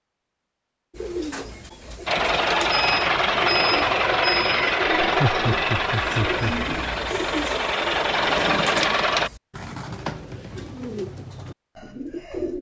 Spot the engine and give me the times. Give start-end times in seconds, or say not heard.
2.0-9.3.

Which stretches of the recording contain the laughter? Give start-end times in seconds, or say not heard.
5.0-6.7.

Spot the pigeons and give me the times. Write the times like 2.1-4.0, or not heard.
0.9-12.5.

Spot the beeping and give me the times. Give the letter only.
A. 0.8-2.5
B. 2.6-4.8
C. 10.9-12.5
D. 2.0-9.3
B.